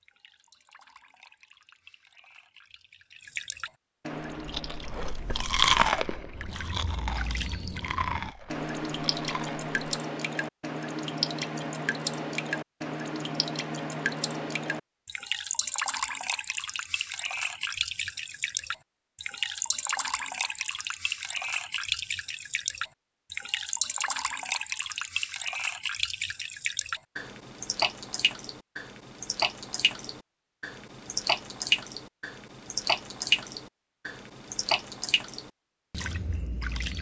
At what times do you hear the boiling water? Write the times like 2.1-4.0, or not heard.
not heard.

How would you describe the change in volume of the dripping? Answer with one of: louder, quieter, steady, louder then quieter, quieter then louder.
louder.